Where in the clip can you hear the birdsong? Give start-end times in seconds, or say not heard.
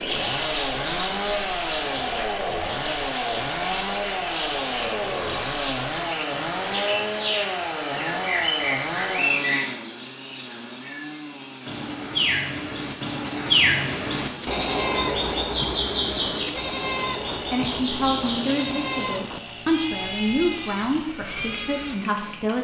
0.0-19.2.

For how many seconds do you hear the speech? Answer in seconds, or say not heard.
5 s.